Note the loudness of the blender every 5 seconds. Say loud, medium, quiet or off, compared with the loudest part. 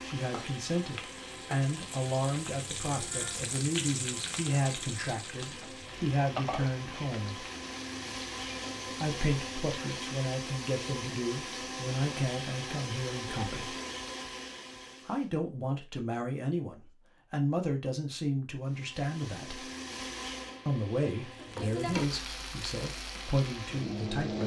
medium, loud, loud, medium, loud.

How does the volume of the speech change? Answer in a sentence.
The volume of the speech stays about the same.